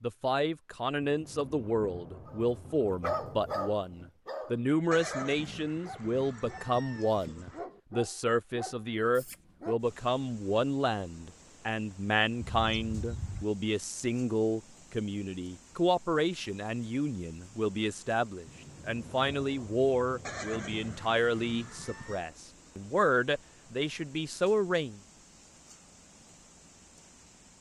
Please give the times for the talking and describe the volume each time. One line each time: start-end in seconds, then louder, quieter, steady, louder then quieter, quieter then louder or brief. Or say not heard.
0.0-25.0 steady.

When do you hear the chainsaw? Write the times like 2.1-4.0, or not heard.
not heard.